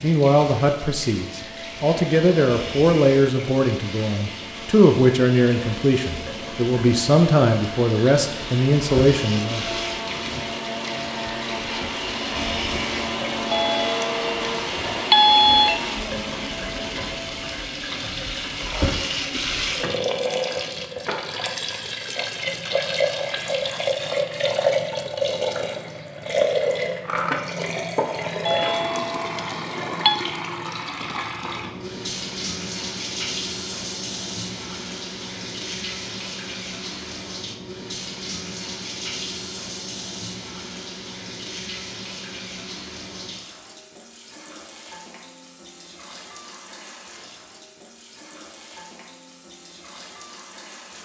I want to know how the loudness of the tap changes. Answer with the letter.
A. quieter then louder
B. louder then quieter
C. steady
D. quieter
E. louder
B.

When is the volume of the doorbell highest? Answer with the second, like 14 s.
15 s.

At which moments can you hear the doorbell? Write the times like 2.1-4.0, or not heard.
13.5-15.8, 28.4-30.1.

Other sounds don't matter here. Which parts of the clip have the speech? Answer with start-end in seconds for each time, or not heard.
0.0-9.7.